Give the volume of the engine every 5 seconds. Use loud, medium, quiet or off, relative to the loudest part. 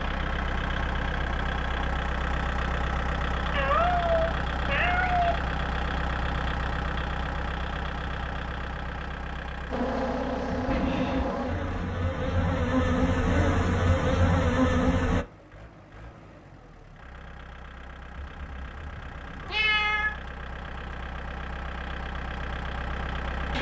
loud, loud, medium, quiet, medium.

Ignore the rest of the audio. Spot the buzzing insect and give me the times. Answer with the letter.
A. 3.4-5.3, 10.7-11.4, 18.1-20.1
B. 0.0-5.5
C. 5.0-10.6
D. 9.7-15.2
D.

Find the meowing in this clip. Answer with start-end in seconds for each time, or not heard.
3.4-5.3, 10.7-11.4, 18.1-20.1.